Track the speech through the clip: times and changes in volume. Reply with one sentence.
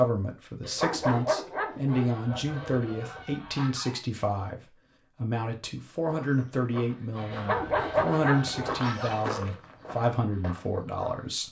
The speech can be heard from 0.0 to 11.4 s, at a steady volume.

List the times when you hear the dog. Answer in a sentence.
You can hear the dog from 0.6 to 3.2 s and from 7.3 to 9.6 s.